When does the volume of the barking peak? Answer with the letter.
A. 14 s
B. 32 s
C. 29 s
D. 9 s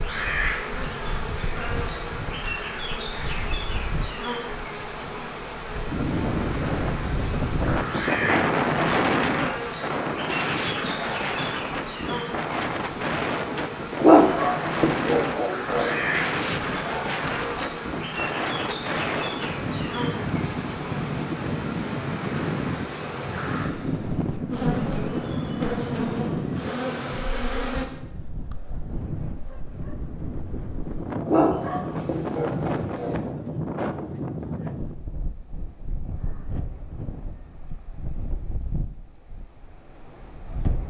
A.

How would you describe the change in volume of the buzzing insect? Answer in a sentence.
The loudness of the buzzing insect stays about the same.